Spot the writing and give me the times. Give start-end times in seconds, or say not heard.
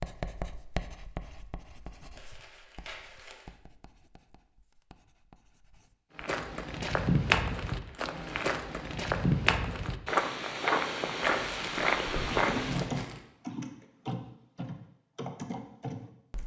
0.0-6.3.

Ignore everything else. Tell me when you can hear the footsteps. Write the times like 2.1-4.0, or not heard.
6.2-12.9.